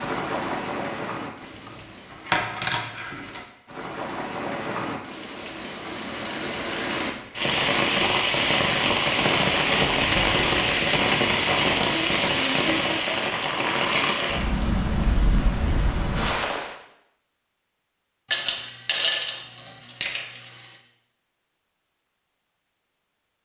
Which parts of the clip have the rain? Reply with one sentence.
The rain can be heard from 0.0 to 16.8 s.